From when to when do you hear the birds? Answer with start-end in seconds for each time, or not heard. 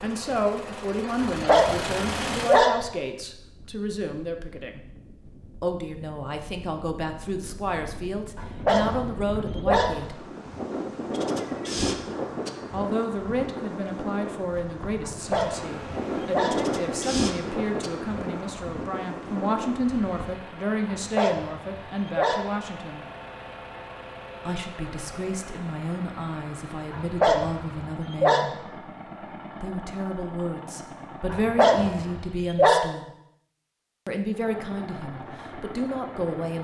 not heard.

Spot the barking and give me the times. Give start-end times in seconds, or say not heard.
1.2-2.8, 8.3-10.0, 15.1-16.6, 20.9-22.5, 26.9-28.4, 31.3-32.8.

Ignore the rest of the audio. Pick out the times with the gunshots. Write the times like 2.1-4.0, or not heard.
not heard.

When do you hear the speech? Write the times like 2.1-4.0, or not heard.
0.0-4.8, 5.6-10.2, 12.7-23.1, 24.4-28.7, 29.6-33.1, 34.0-36.6.